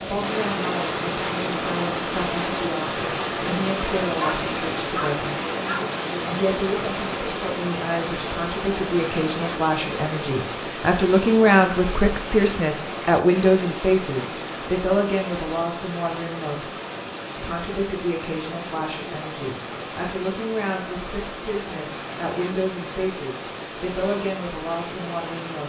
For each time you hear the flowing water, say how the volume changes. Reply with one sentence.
The flowing water can be heard from 0.0 to 25.6 s, getting quieter.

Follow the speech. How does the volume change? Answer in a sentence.
The loudness of the speech goes up, then down.